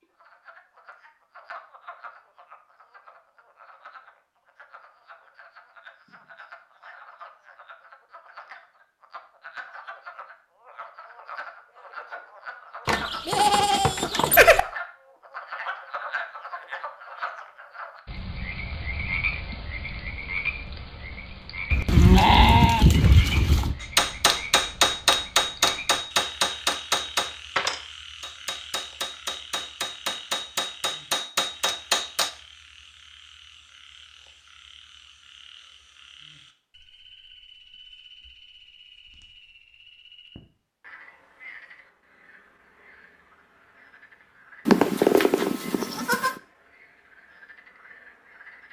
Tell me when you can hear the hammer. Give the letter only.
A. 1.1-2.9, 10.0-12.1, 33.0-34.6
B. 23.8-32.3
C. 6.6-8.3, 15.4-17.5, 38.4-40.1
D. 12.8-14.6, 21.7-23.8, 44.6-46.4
B.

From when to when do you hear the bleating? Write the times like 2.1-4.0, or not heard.
12.8-14.6, 21.7-23.8, 44.6-46.4.